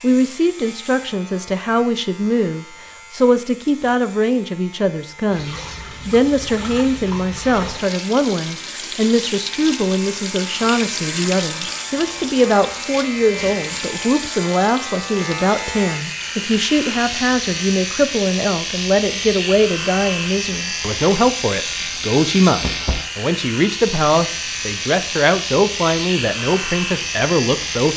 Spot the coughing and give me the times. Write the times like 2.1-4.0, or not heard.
not heard.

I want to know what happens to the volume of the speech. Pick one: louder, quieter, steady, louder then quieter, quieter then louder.
steady.